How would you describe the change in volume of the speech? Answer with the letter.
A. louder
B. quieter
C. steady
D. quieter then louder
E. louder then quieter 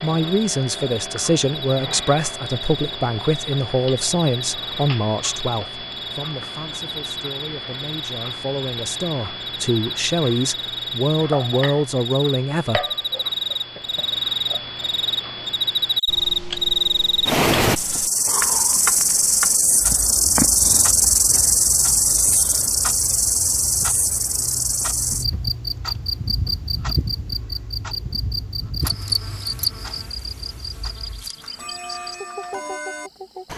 D.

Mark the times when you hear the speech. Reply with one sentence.
The speech can be heard from 0.0 to 12.8 s.